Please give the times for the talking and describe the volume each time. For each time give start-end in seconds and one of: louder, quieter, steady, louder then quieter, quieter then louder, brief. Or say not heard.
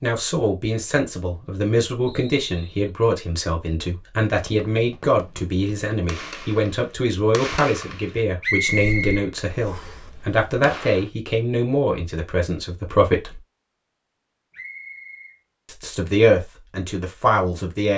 0.0-13.4 steady
15.7-17.9 brief.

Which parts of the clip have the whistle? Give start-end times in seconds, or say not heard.
2.0-2.9, 8.4-10.0, 14.5-15.3.